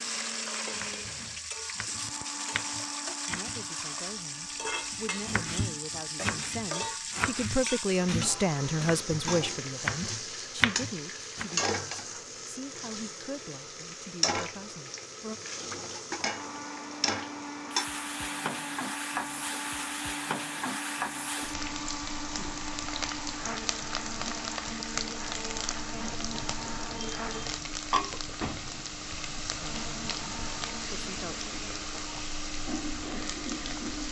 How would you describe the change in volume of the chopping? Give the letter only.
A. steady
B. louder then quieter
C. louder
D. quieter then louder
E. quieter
C.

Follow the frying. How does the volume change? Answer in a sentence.
The loudness of the frying stays about the same.